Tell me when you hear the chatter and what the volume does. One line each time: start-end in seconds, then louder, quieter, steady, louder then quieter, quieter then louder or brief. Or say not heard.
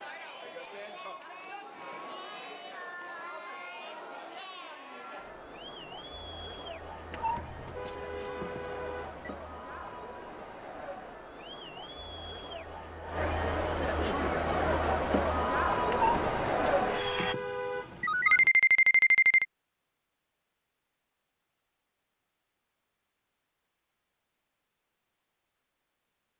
0.0-17.4 louder.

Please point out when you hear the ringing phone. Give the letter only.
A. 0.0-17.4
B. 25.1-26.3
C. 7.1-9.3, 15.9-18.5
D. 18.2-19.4
D.